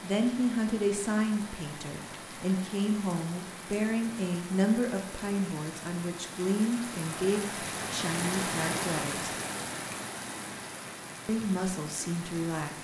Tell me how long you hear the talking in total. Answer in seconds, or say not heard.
11 s.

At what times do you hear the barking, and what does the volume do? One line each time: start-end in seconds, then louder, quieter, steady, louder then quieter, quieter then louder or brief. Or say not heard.
not heard.